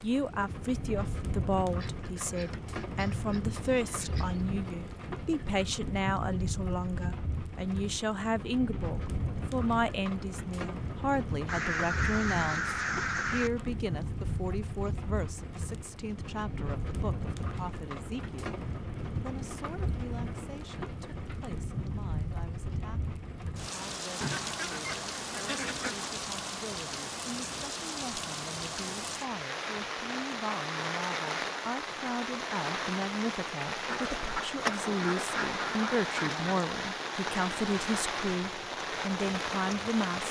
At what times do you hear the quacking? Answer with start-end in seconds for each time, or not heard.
1.8-4.5, 11.4-13.5, 24.2-26.1, 33.9-36.5.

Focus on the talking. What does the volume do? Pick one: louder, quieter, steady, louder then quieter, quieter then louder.
quieter then louder.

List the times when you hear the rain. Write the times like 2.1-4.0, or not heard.
0.0-40.2.